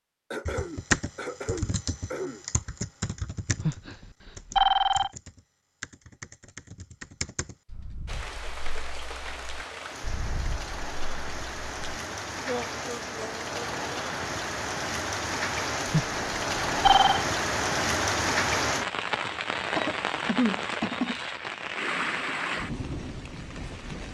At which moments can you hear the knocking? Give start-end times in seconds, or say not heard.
not heard.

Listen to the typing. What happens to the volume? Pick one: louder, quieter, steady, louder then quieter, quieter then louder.
quieter.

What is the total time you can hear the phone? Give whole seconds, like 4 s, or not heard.
3 s.